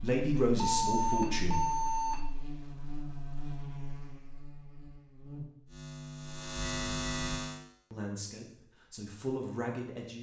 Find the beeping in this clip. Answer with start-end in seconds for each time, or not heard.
0.6-2.3, 6.5-7.4.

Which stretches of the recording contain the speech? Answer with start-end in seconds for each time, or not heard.
0.0-1.6, 7.9-10.1.